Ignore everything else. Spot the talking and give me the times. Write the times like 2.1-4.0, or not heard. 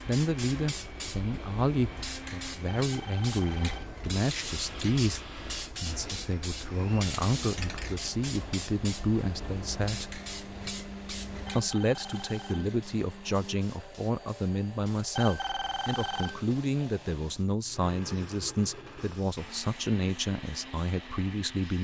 0.1-10.2, 11.6-21.7.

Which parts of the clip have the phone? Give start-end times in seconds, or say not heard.
2.8-4.0, 11.4-12.8, 15.2-16.4.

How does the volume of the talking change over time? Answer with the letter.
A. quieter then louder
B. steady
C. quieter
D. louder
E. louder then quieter
B.